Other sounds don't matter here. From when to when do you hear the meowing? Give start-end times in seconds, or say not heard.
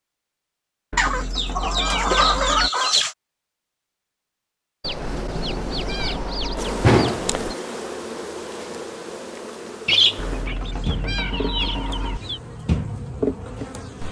0.9-2.7, 5.0-6.8, 10.2-12.2.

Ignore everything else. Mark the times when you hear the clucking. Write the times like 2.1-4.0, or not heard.
0.9-3.1, 4.8-7.5, 9.8-12.4.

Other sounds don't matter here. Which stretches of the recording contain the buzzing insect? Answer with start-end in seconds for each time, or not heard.
6.5-14.0.